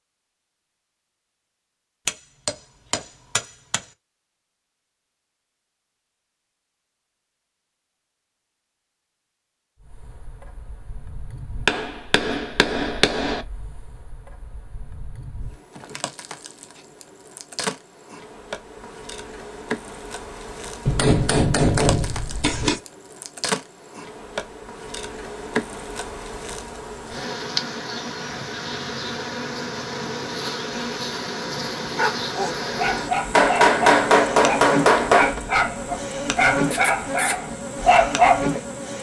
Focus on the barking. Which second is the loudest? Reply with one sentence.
The loudest moment of the barking is at 38 seconds.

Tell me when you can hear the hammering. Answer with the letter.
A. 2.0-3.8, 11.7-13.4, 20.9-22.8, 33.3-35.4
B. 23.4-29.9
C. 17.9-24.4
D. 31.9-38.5
A.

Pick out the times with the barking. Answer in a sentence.
The barking can be heard from 31.9 to 38.5 s.